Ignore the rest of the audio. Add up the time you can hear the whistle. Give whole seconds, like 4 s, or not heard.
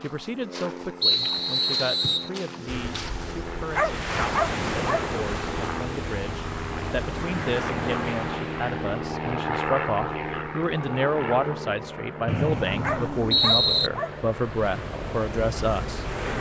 3 s.